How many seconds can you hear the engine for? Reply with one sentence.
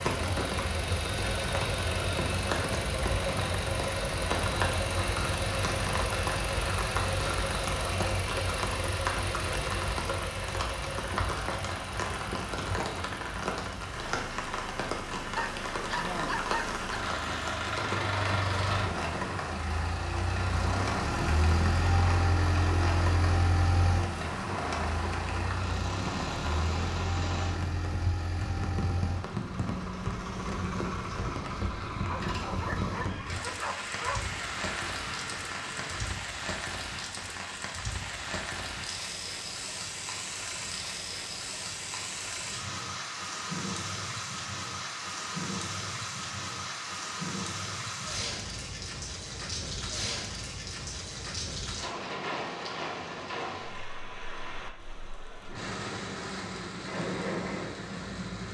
The engine can be heard for 36 seconds in total.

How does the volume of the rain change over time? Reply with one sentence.
The loudness of the rain stays about the same.